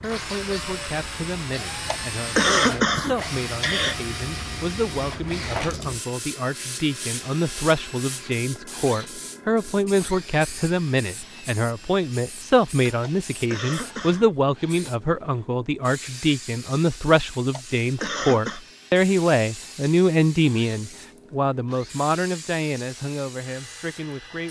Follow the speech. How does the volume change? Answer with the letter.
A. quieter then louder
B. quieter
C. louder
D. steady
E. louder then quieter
C.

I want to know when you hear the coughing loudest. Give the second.
3 s.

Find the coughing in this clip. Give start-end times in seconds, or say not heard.
1.9-4.0, 13.0-14.3, 17.5-18.6.